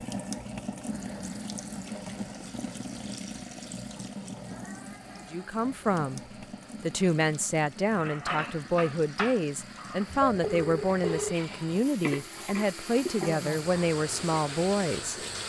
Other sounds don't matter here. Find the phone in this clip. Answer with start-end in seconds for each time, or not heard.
10.1-11.3.